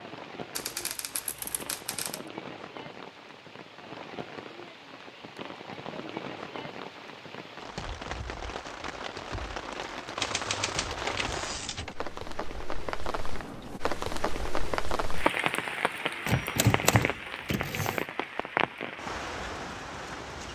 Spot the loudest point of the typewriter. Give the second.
17 s.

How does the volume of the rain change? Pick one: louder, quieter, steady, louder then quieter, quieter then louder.
louder.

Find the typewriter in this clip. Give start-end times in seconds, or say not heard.
0.6-2.2, 10.2-11.9, 16.2-18.0.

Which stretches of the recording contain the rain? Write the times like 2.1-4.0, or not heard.
0.0-20.5.